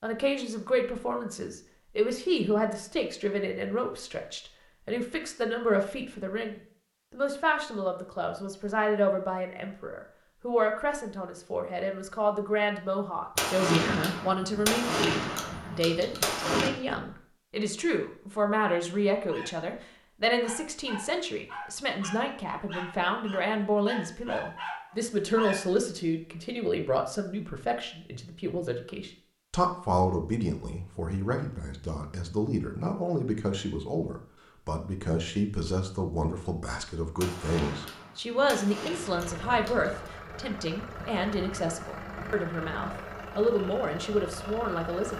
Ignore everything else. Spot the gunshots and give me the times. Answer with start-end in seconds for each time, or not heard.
13.3-16.7, 37.1-40.1.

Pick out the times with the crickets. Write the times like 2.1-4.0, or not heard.
not heard.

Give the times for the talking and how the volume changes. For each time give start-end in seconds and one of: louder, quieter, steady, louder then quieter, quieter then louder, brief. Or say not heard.
0.0-45.1 steady.